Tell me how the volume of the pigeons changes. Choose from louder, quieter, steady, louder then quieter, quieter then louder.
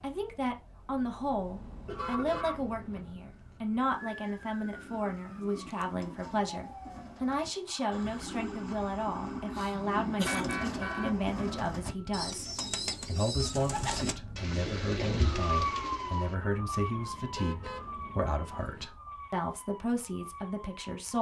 louder.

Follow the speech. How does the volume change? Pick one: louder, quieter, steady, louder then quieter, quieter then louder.
steady.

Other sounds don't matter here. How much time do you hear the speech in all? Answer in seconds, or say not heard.
21 s.